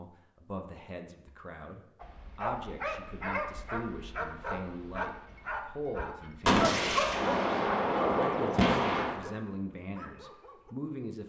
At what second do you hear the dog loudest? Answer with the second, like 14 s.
7 s.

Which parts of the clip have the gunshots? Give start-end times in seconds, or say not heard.
6.5-9.2.